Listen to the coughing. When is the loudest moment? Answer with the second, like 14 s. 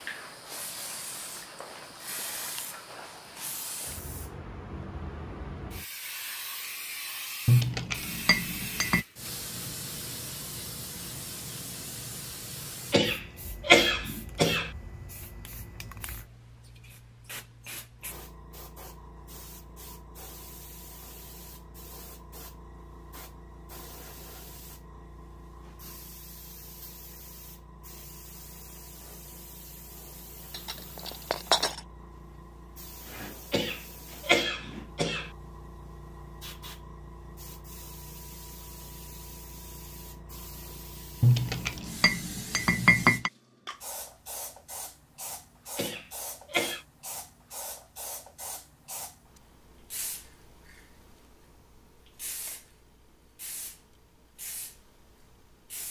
14 s.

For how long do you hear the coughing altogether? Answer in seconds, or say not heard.
5 s.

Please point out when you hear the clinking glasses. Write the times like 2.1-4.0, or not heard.
7.5-9.1, 30.5-31.8, 41.2-43.3.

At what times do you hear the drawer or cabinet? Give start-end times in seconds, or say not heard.
not heard.